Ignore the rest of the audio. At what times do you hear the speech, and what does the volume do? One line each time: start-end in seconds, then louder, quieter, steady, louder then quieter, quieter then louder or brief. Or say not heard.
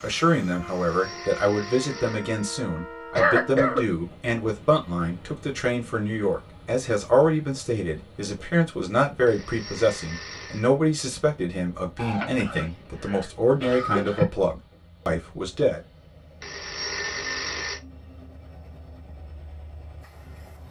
0.0-15.8 steady.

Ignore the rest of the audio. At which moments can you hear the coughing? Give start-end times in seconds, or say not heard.
3.1-3.9, 11.9-14.2.